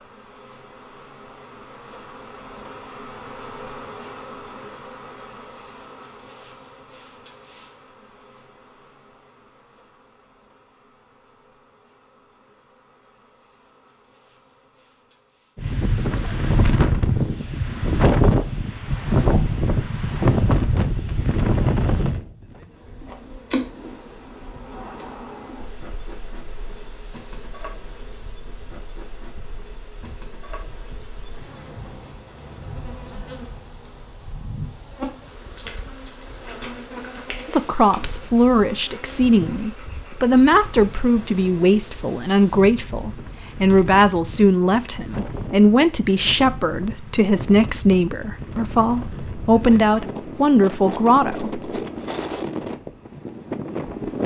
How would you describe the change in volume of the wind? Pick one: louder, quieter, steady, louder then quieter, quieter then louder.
quieter then louder.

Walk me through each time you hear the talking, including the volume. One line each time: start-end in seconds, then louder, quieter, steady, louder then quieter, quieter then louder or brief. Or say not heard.
37.5-51.6 steady.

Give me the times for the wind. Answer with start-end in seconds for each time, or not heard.
15.6-54.2.